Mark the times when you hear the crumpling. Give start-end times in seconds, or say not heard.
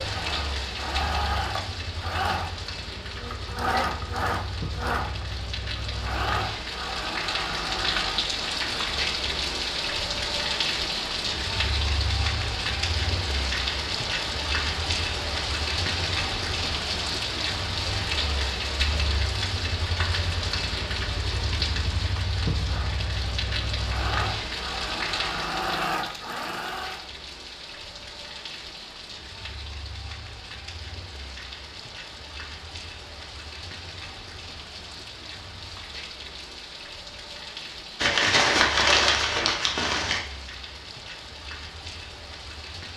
38.0-40.2.